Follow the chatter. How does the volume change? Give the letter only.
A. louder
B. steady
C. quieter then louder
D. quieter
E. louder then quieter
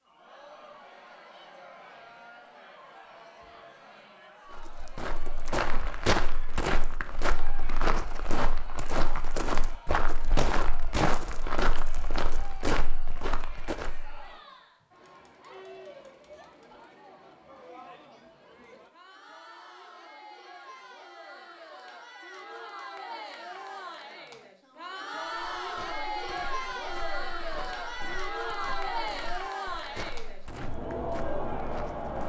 A.